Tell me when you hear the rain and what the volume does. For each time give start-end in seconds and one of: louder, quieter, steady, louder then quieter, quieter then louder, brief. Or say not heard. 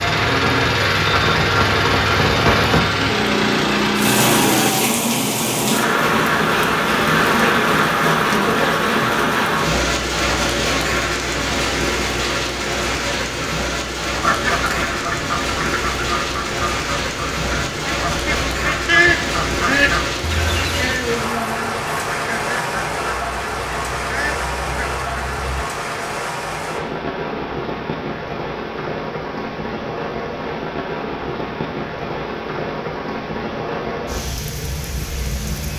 0.0-35.7 quieter.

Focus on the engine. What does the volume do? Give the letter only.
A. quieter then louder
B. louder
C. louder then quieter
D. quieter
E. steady
E.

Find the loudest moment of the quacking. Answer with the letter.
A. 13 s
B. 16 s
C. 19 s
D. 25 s
C.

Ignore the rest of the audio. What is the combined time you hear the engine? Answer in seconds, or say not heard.
5 s.